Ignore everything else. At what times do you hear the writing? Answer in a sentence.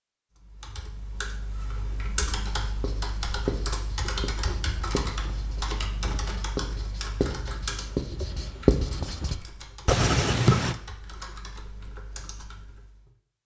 The writing can be heard from 2.6 to 10.8 s.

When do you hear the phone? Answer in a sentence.
The phone can't be heard in this clip.